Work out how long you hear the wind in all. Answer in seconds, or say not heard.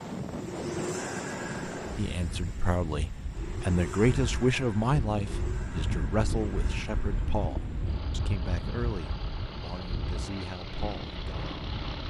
12 s.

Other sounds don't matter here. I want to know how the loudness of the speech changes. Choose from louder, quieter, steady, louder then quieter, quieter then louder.
quieter.